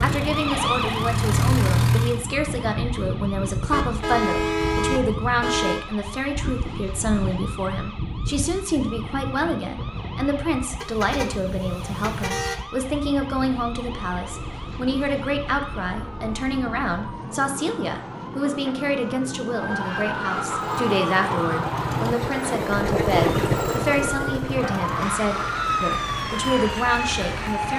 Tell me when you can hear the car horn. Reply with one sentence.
The car horn can be heard from 3.7 to 5.8 s, from 10.8 to 12.6 s and from 20.4 to 20.9 s.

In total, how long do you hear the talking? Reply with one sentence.
You can hear the talking for 28 seconds altogether.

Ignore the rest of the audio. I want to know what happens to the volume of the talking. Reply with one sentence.
The volume of the talking stays about the same.